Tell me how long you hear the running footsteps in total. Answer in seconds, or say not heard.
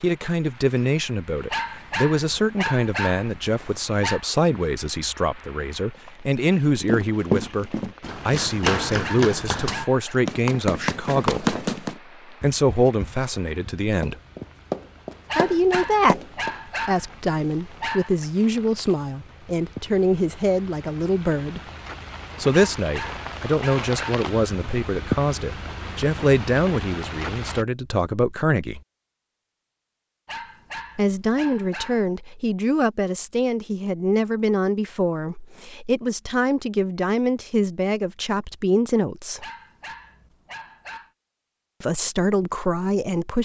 10 s.